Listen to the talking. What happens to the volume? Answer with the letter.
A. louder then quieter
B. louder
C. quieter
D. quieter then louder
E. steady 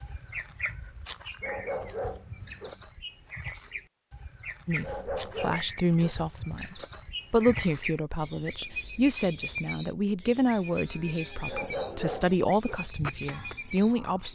E.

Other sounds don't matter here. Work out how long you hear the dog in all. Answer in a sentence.
You can hear the dog for 4 seconds altogether.